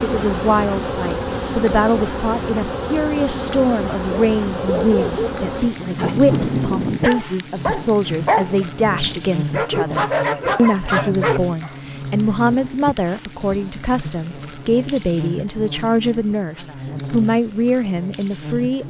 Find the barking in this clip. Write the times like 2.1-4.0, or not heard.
4.0-11.8.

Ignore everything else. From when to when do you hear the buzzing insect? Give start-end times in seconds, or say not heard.
0.0-18.8.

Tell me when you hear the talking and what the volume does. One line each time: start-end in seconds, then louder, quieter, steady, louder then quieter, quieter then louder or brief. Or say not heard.
0.0-18.8 steady.